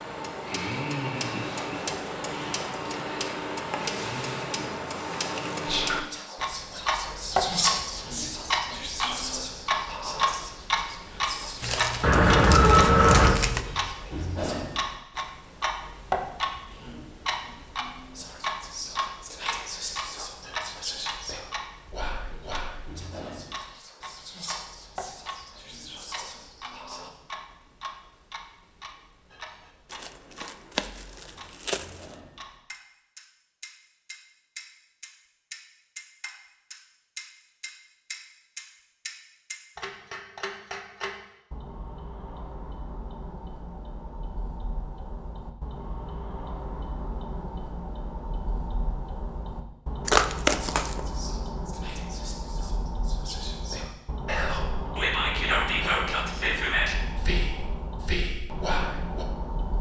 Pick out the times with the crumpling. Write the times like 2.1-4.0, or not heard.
11.6-13.7, 29.9-32.1, 50.0-51.0.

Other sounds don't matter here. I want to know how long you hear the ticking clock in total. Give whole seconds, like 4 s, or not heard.
60 s.